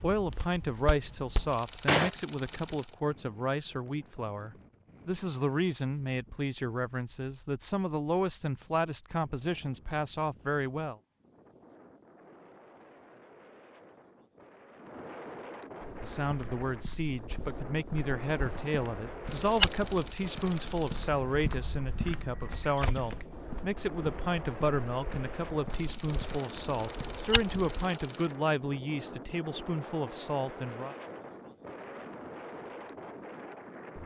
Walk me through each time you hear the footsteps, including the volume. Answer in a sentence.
The footsteps can be heard briefly from 0.1 to 2.1 s; and from 15.8 to 27.6 s, getting louder then quieter.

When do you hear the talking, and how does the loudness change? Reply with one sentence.
The talking can be heard from 0.0 to 10.9 s, at a steady volume; and from 16.0 to 30.9 s, at a steady volume.